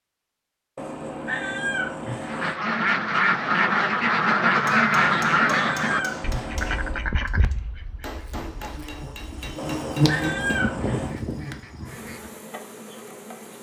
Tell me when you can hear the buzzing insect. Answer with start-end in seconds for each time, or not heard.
8.4-13.5.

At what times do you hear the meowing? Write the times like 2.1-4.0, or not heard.
0.8-2.5, 5.0-7.1, 9.6-11.2.